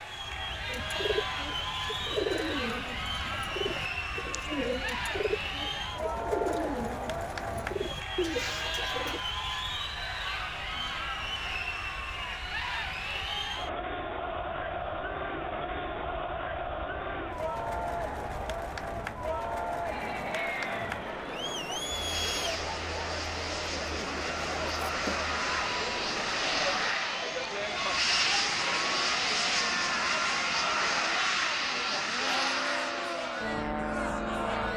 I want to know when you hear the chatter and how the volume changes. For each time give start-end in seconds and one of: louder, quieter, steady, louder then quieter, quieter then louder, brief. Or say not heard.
0.0-34.7 steady.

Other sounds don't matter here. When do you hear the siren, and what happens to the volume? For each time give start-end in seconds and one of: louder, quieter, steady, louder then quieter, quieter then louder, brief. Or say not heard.
not heard.